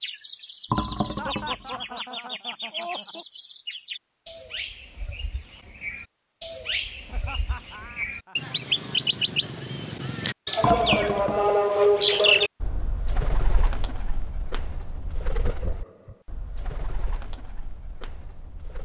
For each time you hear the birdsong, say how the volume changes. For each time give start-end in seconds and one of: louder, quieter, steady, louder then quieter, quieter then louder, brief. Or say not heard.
0.0-18.8 louder then quieter.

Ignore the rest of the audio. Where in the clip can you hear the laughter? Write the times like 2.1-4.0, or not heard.
1.1-3.2, 7.0-8.6, 15.3-16.2.